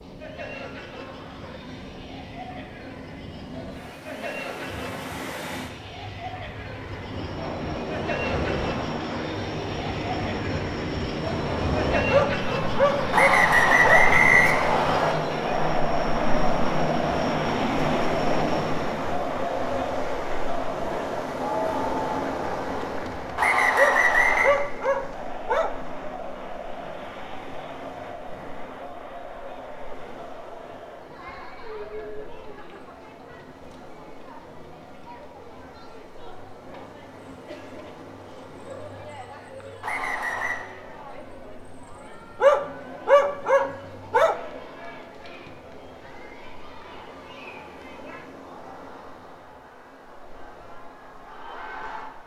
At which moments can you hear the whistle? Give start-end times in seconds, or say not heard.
13.1-15.2, 23.4-24.6, 39.8-40.6.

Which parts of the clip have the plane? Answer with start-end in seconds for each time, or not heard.
7.0-19.1.